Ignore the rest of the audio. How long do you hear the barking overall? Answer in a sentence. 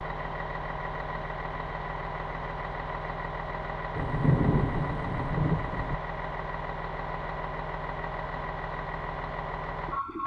You can't hear the barking here.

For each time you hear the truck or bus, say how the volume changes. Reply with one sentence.
You can hear the truck or bus from 0.0 to 10.2 s, at a steady volume.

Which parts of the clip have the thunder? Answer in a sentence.
You can hear the thunder from 4.0 to 6.0 s.